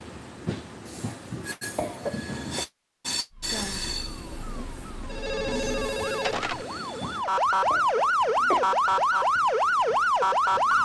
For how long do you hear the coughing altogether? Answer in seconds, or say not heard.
2 s.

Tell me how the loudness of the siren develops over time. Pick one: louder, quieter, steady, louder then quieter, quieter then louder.
louder.